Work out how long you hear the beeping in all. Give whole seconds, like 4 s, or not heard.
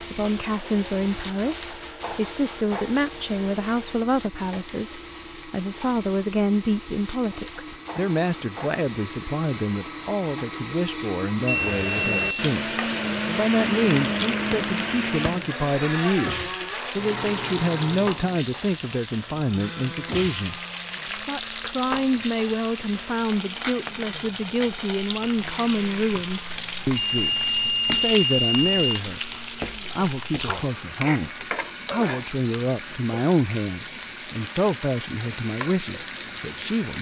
3 s.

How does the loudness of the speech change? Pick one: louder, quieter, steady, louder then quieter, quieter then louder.
steady.